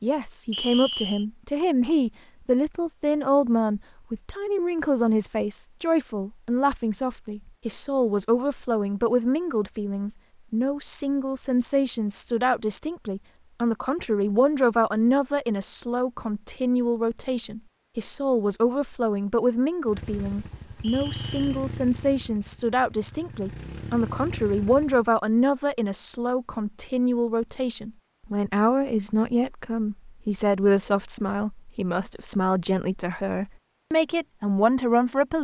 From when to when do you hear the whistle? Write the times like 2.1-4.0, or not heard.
0.5-1.2, 20.8-21.4.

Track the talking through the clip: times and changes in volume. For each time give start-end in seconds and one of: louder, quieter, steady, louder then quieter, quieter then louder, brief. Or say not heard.
0.0-35.3 steady.